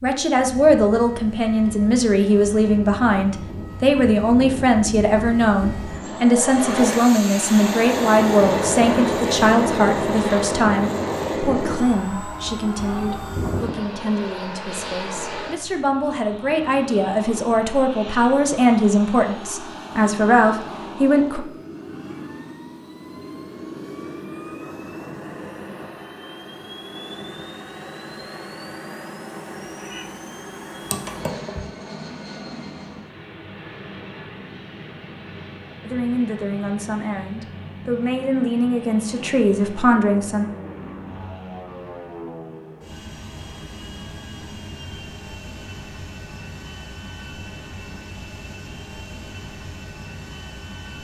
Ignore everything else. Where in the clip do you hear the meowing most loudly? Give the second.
31 s.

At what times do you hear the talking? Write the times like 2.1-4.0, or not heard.
0.0-21.4, 35.9-40.5.